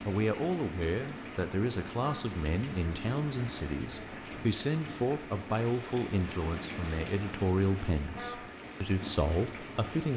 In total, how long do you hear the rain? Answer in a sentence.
You can hear the rain for 10 seconds altogether.